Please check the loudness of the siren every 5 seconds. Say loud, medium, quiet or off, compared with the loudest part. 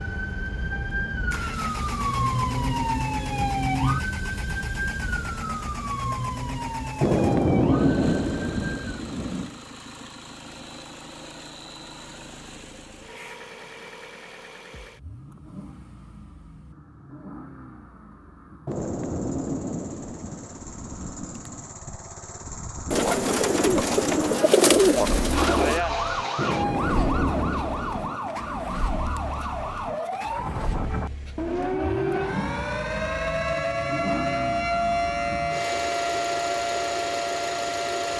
loud, medium, off, off, off, loud, loud, loud.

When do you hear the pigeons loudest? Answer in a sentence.
The volume of the pigeons peaks at 25 seconds.